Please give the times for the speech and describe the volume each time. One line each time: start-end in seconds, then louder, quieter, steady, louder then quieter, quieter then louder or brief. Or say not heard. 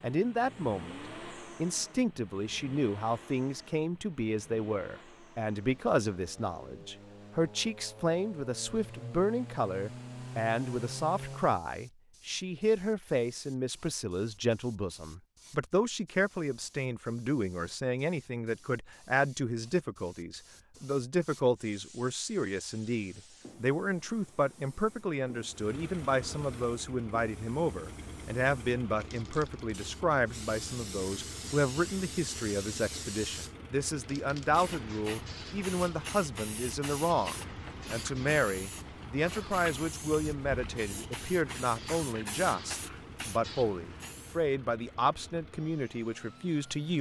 0.0-46.9 steady.